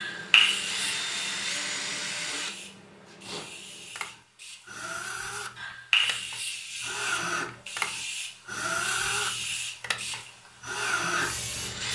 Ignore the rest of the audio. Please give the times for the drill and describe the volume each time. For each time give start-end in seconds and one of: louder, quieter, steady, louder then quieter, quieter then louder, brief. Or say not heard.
0.0-11.8 quieter then louder.